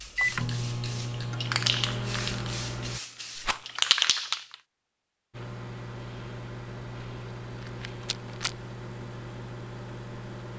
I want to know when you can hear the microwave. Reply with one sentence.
You can hear the microwave from 0.0 to 3.0 s and from 5.3 to 10.5 s.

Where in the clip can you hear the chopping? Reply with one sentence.
The chopping can't be heard in this clip.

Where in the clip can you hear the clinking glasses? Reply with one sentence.
The clinking glasses can't be heard in this clip.